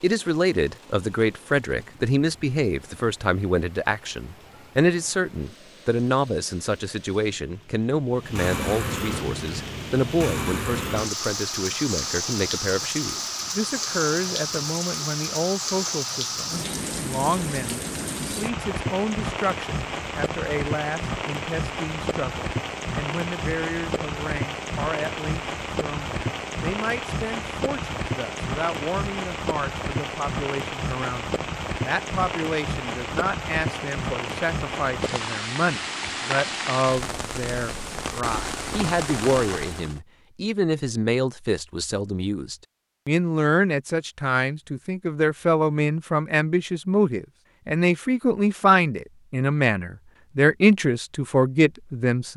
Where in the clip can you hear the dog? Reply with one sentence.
You can't hear the dog here.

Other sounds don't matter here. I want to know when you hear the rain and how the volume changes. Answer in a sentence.
You can hear the rain from 0.0 to 40.0 s, getting louder.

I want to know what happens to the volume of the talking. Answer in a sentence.
The loudness of the talking goes down, then up.